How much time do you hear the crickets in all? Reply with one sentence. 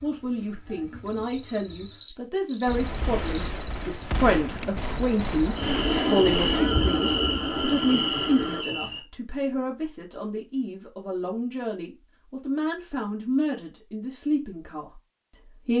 You can hear the crickets for 9 seconds altogether.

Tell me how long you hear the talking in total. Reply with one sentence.
You can hear the talking for 15 seconds altogether.